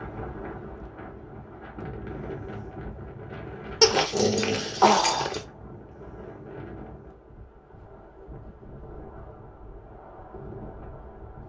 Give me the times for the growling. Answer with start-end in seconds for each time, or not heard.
3.8-5.4.